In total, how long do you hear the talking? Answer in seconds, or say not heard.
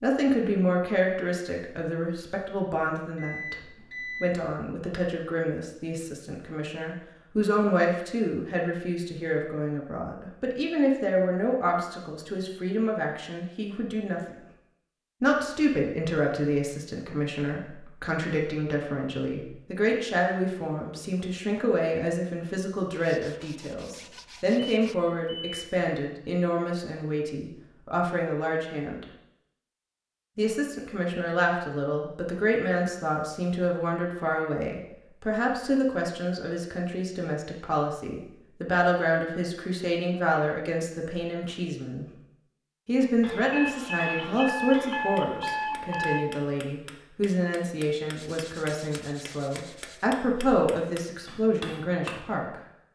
49 s.